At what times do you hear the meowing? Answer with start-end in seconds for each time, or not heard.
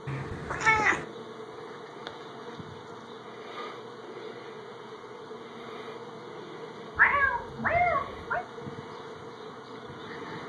0.1-1.1, 7.0-8.4.